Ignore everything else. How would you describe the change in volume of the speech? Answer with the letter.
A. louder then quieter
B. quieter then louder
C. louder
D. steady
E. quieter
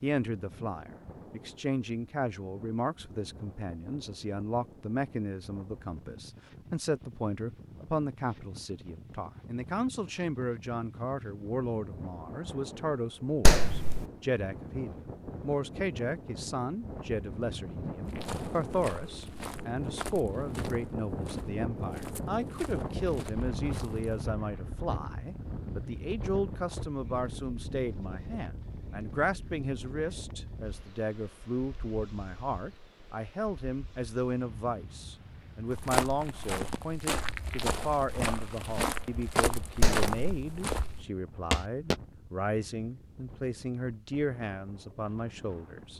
D.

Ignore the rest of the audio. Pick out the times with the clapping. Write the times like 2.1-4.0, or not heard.
13.4-14.0, 39.8-40.4.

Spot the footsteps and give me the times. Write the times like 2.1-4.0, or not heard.
18.0-24.2, 35.7-42.0.